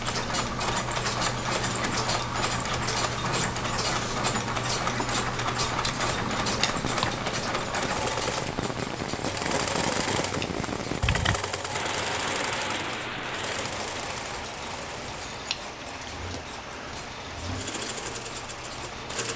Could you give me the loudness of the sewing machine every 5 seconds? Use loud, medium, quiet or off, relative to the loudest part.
loud, loud, loud, medium.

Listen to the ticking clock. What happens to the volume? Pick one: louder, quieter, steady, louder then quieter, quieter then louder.
quieter.